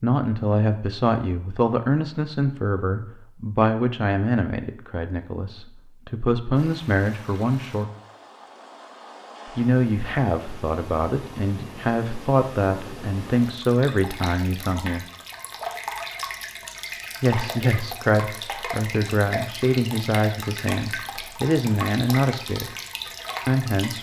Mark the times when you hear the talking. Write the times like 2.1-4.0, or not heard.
0.0-7.9, 9.6-15.1, 17.2-22.6, 23.4-23.9.